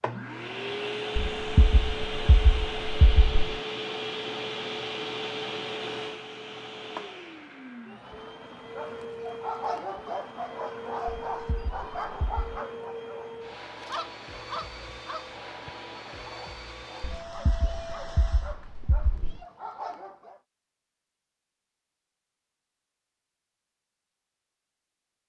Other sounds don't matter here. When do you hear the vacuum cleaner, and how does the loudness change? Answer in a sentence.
You can hear the vacuum cleaner from 0.0 to 18.6 s, getting quieter.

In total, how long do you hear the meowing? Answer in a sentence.
You can hear the meowing for 6 seconds altogether.